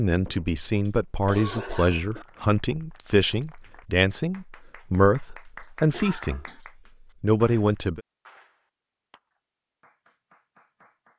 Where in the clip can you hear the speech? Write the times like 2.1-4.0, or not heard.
0.0-6.5, 7.2-8.0.